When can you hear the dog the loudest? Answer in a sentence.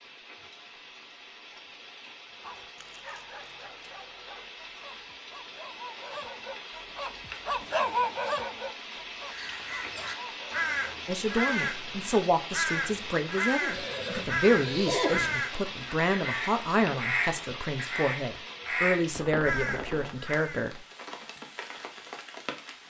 The volume of the dog peaks at 8 seconds.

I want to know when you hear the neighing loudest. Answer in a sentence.
The loudest moment of the neighing is at 15 seconds.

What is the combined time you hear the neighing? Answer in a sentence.
The neighing can be heard for 2 seconds in total.